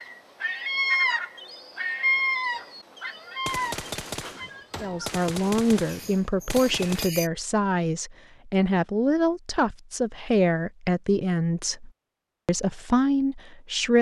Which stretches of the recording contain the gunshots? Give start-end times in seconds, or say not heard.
3.5-7.1.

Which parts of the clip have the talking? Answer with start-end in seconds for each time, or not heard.
4.8-13.9.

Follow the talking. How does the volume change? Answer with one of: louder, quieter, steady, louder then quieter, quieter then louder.
steady.